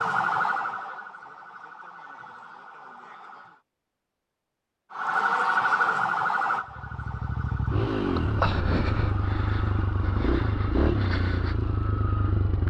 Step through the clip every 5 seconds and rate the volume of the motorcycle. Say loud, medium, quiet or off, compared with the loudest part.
off, loud, loud.